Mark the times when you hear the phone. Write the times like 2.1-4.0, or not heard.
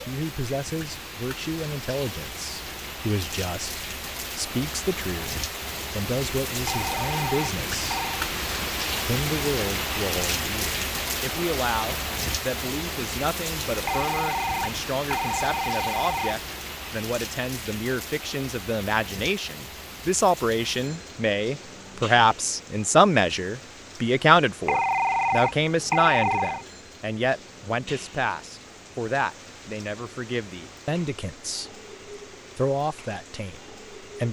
6.7-8.2, 13.8-16.4, 24.6-26.6.